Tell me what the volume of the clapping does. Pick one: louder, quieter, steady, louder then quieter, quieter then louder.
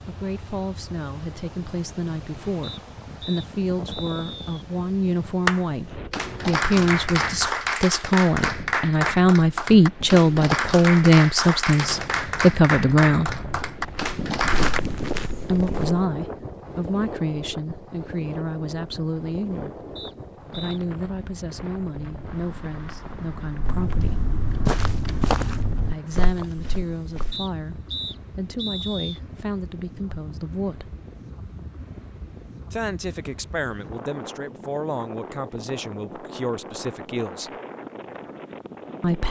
steady.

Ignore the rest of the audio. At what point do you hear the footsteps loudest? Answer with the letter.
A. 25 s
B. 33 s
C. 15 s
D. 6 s
A.